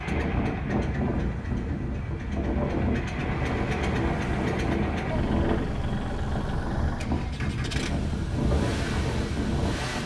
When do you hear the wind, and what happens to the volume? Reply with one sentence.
The wind can be heard from 0.0 to 10.0 s, at a steady volume.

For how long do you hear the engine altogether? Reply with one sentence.
You can hear the engine for 10 seconds altogether.